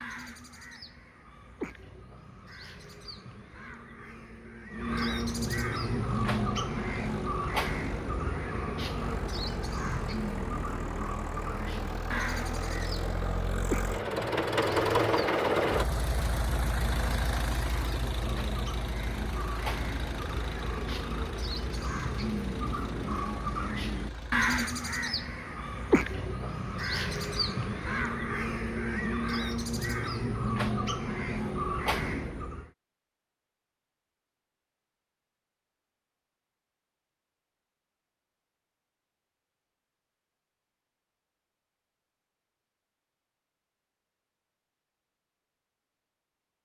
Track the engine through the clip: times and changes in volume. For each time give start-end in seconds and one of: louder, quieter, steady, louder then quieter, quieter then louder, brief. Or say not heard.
5.8-24.5 louder then quieter.